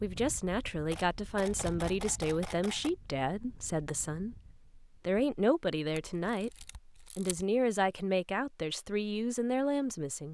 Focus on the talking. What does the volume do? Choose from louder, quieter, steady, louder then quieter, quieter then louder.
steady.